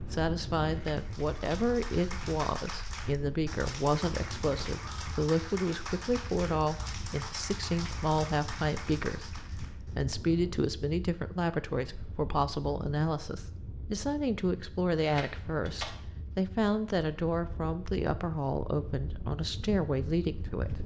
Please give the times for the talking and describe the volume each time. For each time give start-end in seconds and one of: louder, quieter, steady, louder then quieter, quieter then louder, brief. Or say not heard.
0.1-20.8 steady.